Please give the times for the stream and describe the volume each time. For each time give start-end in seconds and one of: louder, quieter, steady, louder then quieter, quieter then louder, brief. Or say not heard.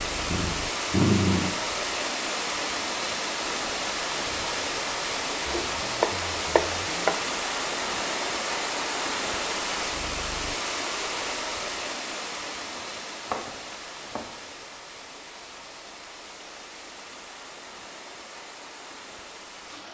0.0-19.8 quieter.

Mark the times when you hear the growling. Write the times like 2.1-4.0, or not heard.
0.3-1.6.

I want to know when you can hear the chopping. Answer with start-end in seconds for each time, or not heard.
5.5-7.2, 12.8-14.3.